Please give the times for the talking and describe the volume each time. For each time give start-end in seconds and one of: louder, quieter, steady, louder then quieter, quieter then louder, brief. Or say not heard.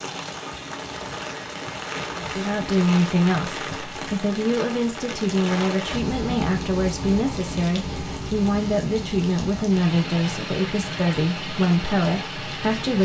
2.1-12.9 steady.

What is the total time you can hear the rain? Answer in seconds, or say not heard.
13 s.